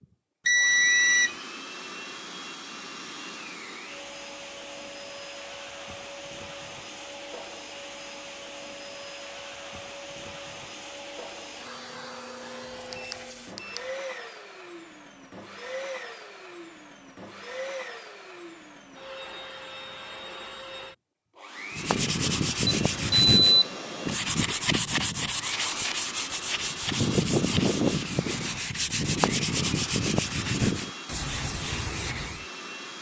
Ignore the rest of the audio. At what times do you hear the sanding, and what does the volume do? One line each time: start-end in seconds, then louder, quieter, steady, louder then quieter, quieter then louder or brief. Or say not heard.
21.7-32.5 steady.